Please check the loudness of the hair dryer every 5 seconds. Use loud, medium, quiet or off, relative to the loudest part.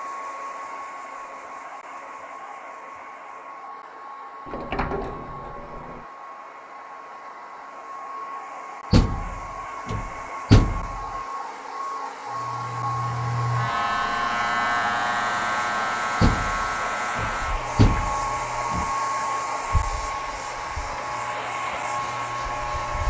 medium, medium, loud, loud, loud.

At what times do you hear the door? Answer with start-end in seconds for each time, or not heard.
4.5-6.0, 8.9-11.1, 16.2-18.9.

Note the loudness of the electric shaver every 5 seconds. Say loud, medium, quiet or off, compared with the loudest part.
off, off, loud, loud, medium.